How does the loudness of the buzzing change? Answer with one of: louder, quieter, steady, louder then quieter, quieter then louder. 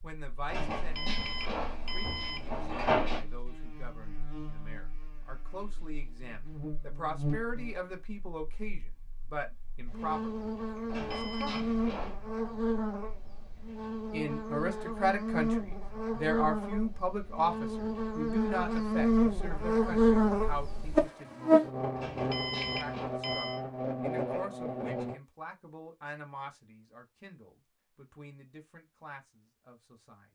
louder.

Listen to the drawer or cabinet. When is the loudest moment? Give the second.
3 s.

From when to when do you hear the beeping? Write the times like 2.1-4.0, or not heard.
0.9-2.5, 11.1-11.7, 22.3-23.6.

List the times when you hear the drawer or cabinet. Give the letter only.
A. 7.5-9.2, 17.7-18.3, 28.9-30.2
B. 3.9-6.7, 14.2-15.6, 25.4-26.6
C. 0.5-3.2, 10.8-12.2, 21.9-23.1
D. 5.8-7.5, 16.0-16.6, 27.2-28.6
C.